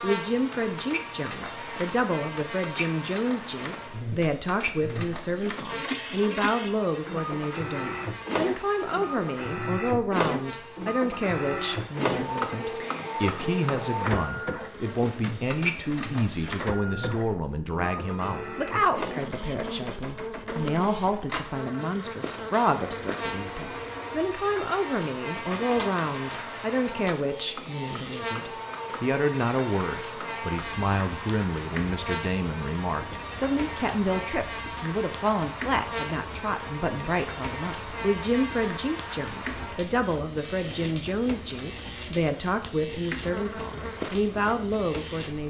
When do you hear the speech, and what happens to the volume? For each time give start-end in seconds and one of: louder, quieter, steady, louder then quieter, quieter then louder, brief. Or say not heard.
0.0-45.4 steady.